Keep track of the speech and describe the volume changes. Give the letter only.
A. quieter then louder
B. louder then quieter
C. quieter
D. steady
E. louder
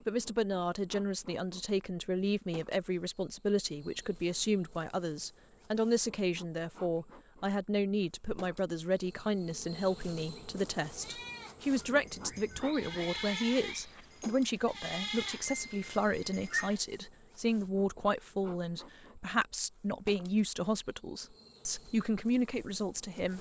D.